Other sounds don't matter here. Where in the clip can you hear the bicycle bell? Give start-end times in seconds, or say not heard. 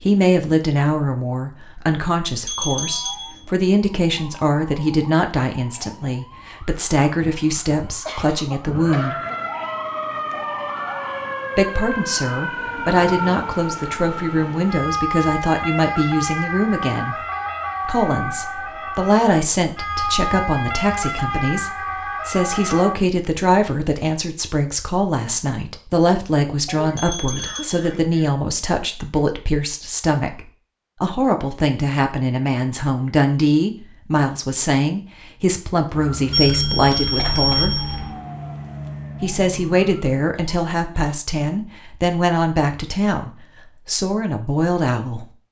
2.5-3.4, 26.9-27.8, 36.3-38.1.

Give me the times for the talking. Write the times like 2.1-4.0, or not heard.
0.0-9.2, 11.6-17.1, 17.9-37.8, 39.2-45.3.